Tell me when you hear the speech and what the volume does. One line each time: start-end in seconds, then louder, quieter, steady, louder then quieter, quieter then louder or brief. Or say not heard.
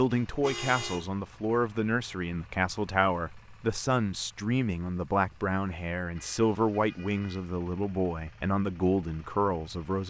0.0-10.0 steady.